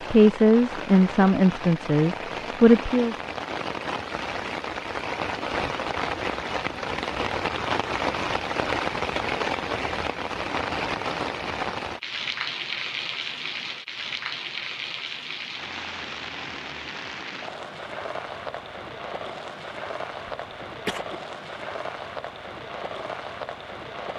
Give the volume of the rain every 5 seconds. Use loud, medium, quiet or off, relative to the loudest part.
medium, loud, loud, medium, medium.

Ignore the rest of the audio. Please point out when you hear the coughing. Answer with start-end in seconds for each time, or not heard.
20.4-21.2.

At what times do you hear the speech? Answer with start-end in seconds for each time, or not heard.
0.1-3.1.